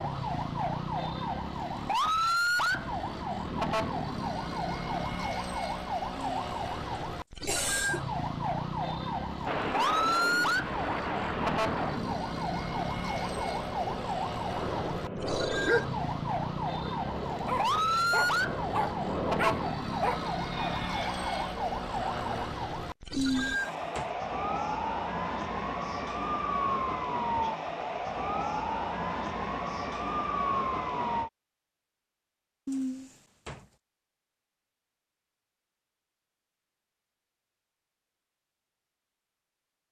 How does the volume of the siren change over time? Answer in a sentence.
The volume of the siren stays about the same.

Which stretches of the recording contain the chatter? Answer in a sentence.
You can't hear the chatter here.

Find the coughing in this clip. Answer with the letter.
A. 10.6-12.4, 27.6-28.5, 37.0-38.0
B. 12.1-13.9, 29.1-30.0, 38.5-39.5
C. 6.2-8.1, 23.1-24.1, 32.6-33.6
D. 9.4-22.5
C.